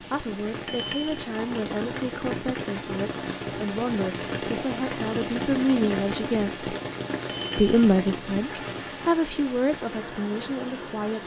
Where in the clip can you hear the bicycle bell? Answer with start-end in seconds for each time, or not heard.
0.7-1.2, 7.2-7.8.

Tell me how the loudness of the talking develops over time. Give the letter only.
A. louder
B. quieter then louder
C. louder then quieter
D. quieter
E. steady
C.